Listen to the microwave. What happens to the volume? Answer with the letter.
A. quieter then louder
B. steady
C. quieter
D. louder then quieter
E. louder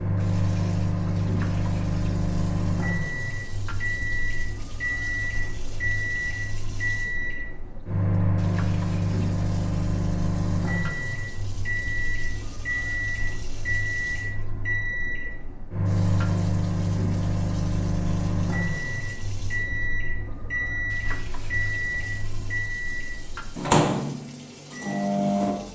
B.